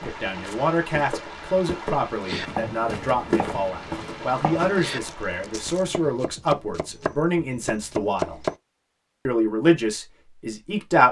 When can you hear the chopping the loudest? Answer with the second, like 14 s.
8 s.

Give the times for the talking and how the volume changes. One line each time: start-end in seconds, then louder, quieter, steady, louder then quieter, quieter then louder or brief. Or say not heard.
0.0-8.4 steady
9.2-11.0 brief.